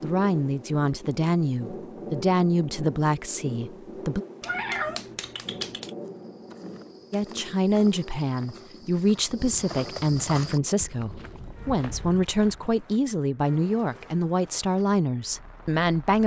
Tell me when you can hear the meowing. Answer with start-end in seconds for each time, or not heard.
4.4-5.9.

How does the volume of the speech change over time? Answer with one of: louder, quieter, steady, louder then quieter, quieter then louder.
steady.